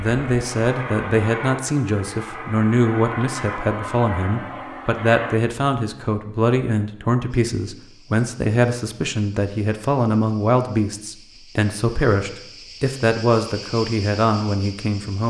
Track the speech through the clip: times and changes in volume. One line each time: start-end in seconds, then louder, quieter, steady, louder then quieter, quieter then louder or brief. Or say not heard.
0.0-15.2 steady.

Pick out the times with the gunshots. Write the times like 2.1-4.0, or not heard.
not heard.